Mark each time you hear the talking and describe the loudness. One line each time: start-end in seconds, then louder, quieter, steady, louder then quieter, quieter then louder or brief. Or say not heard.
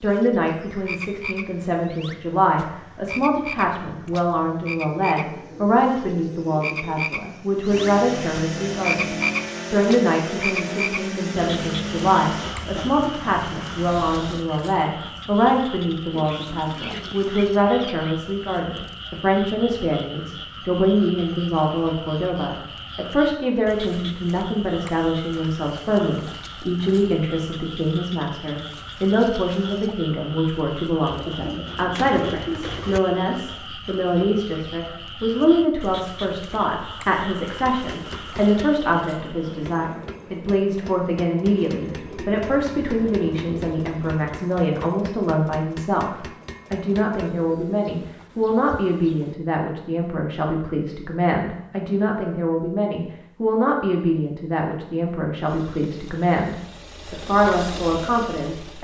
0.0-58.7 steady.